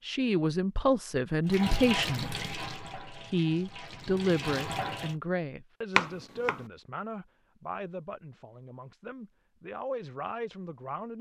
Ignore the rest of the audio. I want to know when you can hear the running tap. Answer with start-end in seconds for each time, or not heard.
1.4-5.2.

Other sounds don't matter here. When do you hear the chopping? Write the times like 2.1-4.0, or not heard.
6.0-6.6.